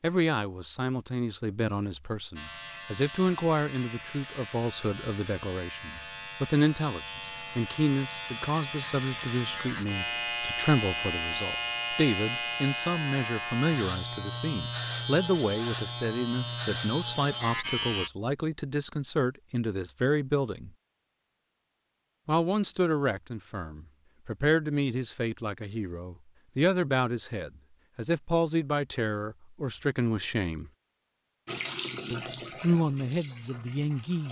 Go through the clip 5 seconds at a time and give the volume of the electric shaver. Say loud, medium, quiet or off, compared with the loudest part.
medium, medium, loud, loud, off, off, off.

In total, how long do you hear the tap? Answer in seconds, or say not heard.
3 s.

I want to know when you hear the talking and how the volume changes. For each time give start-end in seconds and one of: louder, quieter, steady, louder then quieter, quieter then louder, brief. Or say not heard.
0.0-20.7 steady
22.2-30.7 steady
32.1-34.2 brief.